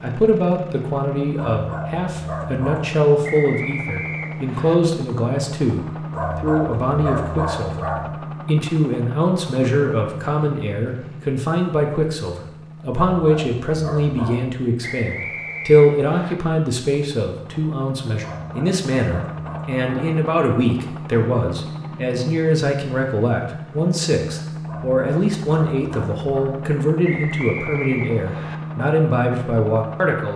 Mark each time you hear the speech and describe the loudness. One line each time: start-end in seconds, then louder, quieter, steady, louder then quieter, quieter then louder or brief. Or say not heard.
0.0-30.3 steady.